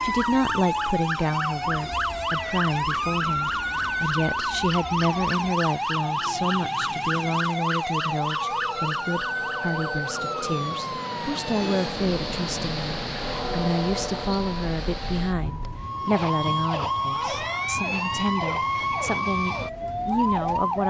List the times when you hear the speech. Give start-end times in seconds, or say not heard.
0.0-20.8.